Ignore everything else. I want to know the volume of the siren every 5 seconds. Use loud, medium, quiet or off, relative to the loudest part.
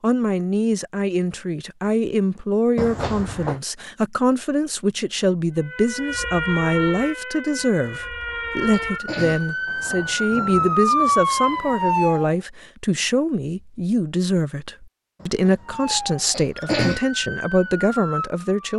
off, medium, loud, medium.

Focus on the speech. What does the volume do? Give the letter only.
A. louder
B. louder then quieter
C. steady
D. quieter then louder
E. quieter
C.